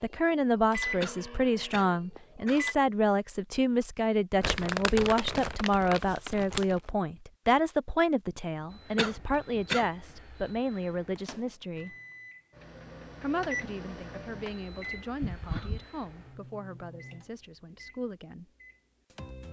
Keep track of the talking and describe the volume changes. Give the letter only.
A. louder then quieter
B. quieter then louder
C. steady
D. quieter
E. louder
D.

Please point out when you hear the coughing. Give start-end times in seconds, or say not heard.
1.0-2.6, 8.9-9.8, 15.2-15.8.